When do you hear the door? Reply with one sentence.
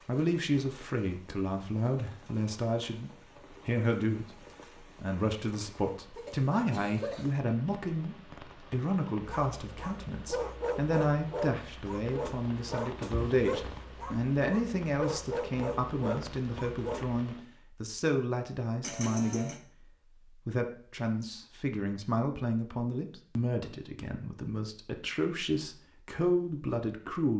The door can't be heard in this clip.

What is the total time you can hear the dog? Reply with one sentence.
You can hear the dog for 8 seconds altogether.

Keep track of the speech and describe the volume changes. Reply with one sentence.
The loudness of the speech stays about the same.